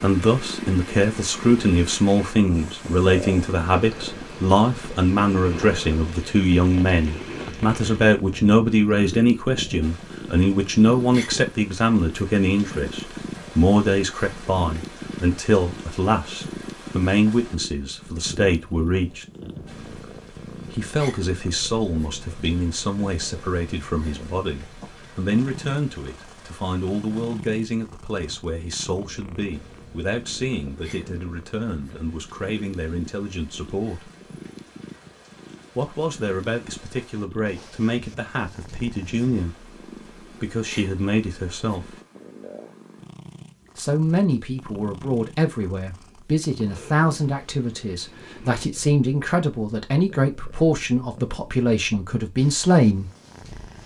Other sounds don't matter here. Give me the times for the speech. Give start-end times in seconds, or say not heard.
0.0-19.2, 20.6-34.1, 35.8-42.0, 43.8-53.1.